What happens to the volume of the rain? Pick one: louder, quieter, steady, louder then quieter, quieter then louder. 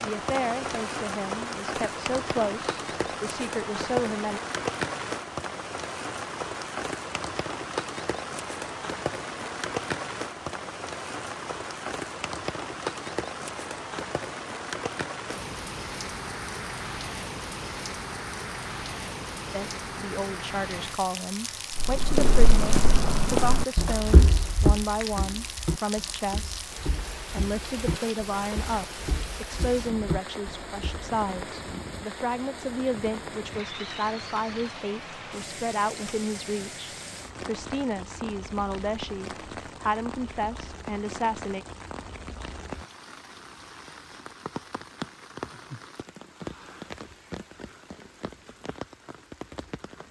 quieter.